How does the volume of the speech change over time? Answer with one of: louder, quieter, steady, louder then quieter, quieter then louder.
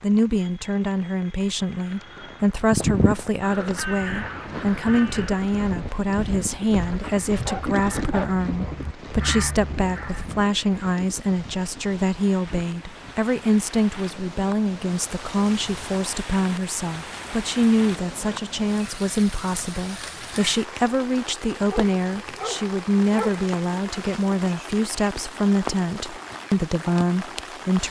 steady.